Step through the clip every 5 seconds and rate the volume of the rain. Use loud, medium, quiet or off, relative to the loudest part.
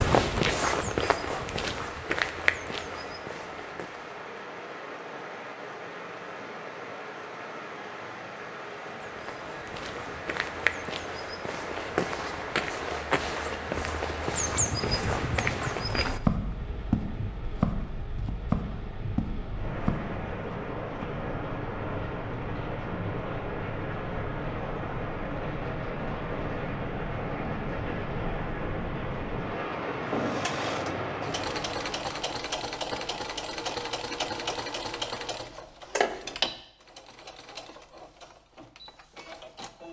medium, medium, medium, medium, loud, loud, loud, off.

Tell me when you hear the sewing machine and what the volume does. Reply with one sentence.
The sewing machine can be heard from 30.1 to 39.8 s, getting quieter.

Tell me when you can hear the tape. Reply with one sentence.
You can't hear the tape here.